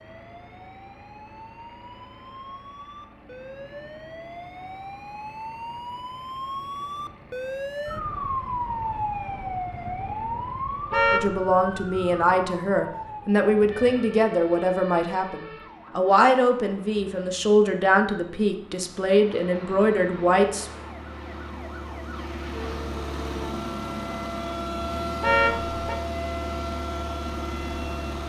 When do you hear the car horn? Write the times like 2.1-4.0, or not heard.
10.9-11.4, 25.2-25.9.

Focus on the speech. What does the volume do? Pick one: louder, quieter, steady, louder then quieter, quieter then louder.
steady.